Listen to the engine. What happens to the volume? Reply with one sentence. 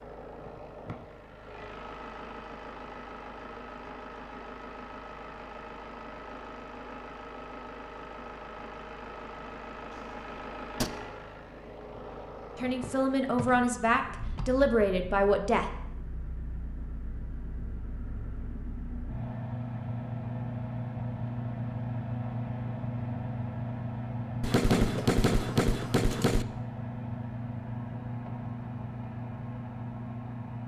The volume of the engine goes up.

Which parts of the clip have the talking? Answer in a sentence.
The talking can be heard from 12.6 to 15.7 s.